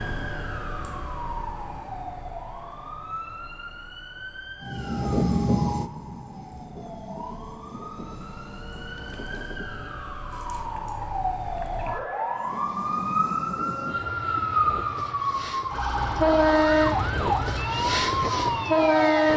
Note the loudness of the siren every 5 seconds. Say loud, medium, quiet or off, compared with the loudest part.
medium, quiet, loud, loud.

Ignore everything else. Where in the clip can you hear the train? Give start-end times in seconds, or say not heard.
4.6-10.0, 12.3-19.3.